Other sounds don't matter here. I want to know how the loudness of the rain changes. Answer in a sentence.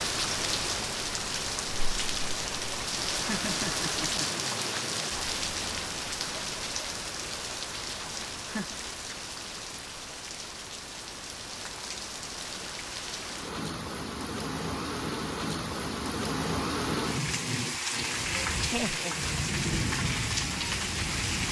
The loudness of the rain goes down, then up.